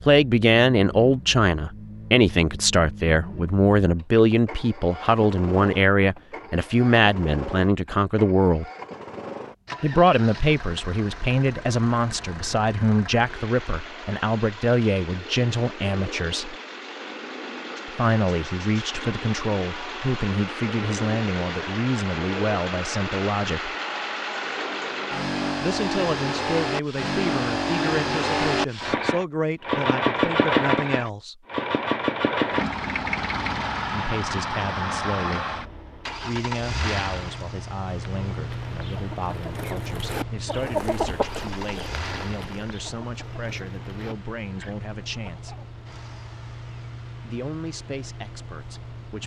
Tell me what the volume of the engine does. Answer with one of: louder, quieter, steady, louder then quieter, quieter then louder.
louder then quieter.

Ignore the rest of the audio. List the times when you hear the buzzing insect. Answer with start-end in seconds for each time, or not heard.
not heard.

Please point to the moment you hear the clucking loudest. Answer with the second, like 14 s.
41 s.